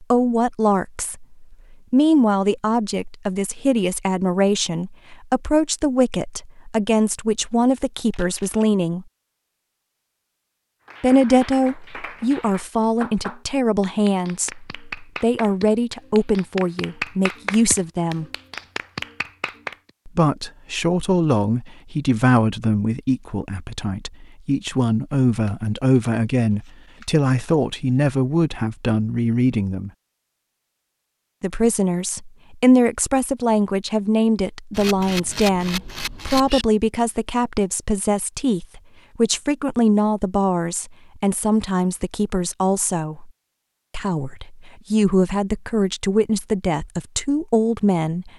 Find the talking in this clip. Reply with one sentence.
You can hear the talking from 0.0 to 9.1 s, from 11.0 to 18.2 s, from 20.1 to 29.9 s, from 31.4 to 43.3 s and from 43.9 to 48.3 s.